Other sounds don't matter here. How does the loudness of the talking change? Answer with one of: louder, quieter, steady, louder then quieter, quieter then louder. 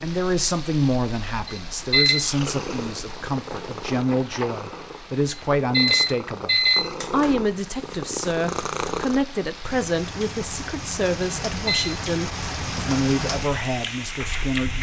steady.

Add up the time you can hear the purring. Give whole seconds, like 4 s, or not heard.
7 s.